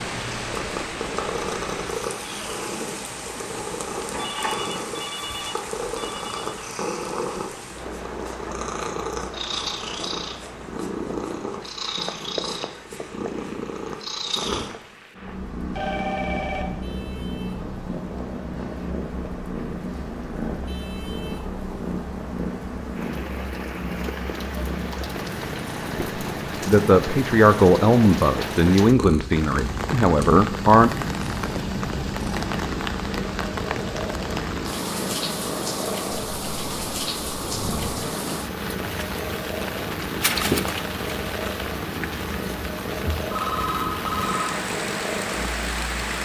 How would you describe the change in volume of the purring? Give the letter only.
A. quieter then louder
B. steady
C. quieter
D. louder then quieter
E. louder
B.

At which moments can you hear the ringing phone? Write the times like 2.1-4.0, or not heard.
4.2-6.5, 15.7-16.6, 43.3-44.5.